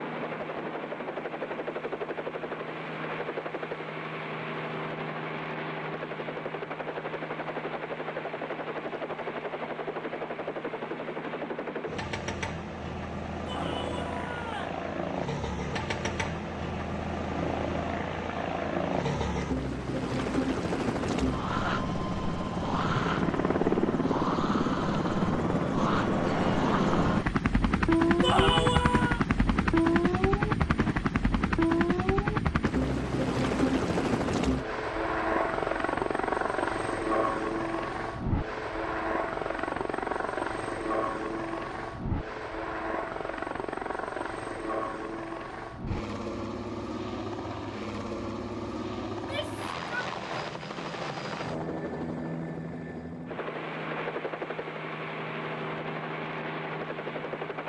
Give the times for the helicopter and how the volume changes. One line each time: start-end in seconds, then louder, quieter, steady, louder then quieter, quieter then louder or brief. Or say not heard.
0.0-57.6 louder then quieter.